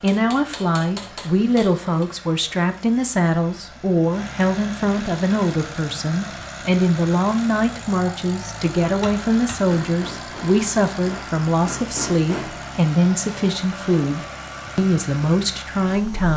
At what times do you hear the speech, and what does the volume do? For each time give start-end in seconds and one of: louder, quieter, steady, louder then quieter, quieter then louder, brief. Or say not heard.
0.0-16.3 steady.